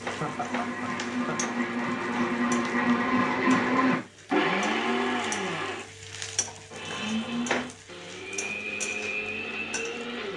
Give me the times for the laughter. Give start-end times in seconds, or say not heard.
0.2-1.4.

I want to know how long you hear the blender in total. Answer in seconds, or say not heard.
10 s.